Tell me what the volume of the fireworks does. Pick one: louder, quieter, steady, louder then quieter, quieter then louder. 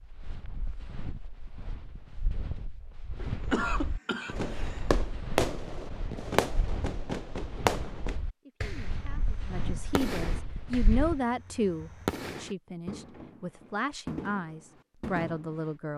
quieter.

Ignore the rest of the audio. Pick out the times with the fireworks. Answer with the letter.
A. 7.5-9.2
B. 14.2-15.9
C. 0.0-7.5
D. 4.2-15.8
D.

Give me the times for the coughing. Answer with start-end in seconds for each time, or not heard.
3.2-4.8.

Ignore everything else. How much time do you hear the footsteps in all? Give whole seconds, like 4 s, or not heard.
11 s.